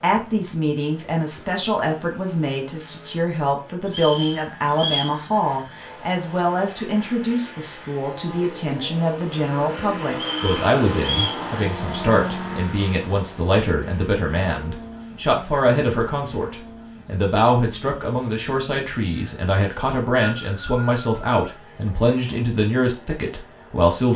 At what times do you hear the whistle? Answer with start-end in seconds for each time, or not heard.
3.9-5.2, 10.1-11.4, 19.7-21.5.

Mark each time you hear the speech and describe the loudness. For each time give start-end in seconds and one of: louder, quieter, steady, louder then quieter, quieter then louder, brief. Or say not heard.
0.0-24.1 steady.